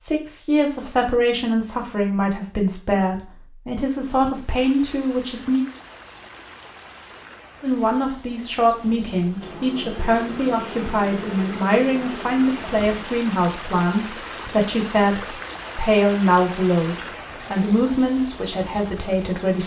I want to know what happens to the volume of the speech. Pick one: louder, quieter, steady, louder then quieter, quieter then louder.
steady.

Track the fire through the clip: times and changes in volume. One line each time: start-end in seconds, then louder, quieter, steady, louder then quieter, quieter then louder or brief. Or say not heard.
not heard.